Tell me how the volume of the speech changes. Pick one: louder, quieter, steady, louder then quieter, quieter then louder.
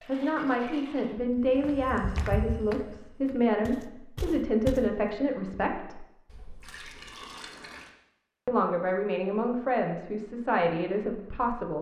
steady.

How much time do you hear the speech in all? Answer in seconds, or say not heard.
9 s.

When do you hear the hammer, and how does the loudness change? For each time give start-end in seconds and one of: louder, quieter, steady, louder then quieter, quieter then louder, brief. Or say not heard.
not heard.